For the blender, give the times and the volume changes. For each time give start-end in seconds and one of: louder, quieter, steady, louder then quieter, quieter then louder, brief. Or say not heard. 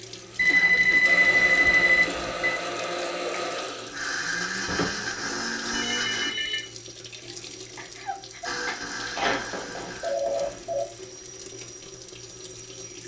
0.0-6.3 steady
8.4-10.2 brief.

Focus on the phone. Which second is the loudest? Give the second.
1 s.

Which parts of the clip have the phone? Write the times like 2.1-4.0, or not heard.
0.3-2.5, 4.7-6.7, 9.0-10.8.